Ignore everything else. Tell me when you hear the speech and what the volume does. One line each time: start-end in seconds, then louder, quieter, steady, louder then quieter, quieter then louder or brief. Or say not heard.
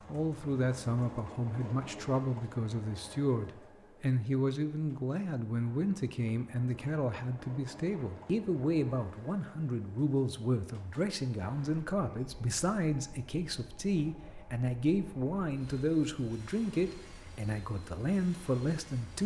0.1-19.2 steady.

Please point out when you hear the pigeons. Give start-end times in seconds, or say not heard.
not heard.